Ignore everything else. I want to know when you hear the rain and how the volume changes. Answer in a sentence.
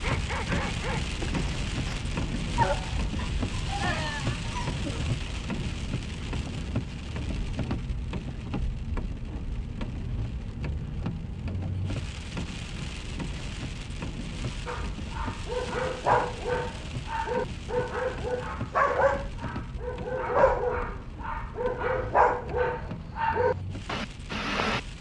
You can hear the rain from 0.0 to 24.9 s, getting quieter.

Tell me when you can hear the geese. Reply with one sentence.
You can't hear the geese here.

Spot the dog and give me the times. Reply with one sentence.
The dog can be heard from 0.0 to 5.2 s and from 14.7 to 24.9 s.